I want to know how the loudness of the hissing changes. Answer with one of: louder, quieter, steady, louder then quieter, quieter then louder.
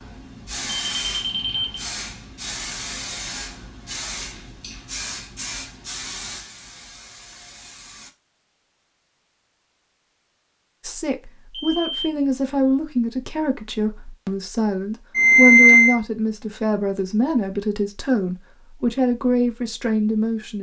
quieter.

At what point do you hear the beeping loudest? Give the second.
16 s.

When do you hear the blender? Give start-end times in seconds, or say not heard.
not heard.